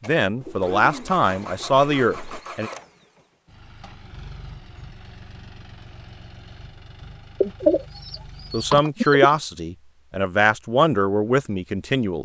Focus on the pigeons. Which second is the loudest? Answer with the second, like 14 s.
8 s.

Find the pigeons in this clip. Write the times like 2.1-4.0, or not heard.
0.4-2.4, 7.4-9.3.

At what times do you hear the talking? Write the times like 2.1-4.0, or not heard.
0.1-2.7, 8.5-12.2.